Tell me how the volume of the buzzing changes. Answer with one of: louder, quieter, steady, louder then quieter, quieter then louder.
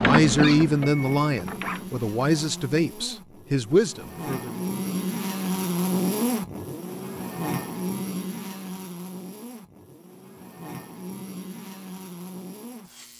louder then quieter.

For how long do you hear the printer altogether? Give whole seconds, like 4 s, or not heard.
3 s.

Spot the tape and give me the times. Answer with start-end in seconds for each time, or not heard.
not heard.